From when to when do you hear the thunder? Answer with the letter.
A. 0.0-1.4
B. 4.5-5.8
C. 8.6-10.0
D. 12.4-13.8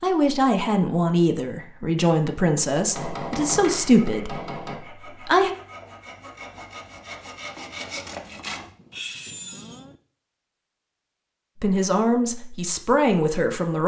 C.